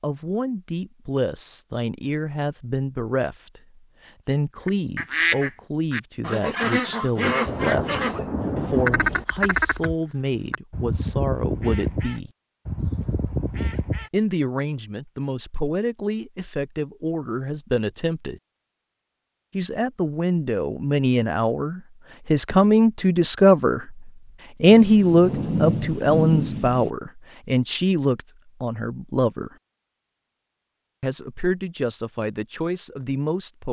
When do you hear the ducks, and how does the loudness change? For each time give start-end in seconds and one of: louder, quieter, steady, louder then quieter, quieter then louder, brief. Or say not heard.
4.7-14.1 quieter.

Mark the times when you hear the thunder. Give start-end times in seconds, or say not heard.
7.4-9.2, 24.7-26.9.